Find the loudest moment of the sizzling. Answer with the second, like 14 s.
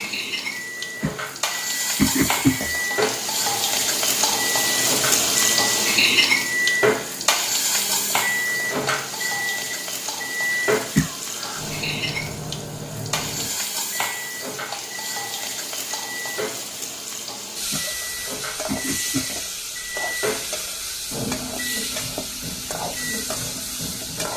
6 s.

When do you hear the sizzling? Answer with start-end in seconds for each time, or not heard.
0.0-24.3.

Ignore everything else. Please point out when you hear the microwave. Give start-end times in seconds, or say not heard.
0.2-24.3.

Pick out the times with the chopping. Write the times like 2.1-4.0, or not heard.
not heard.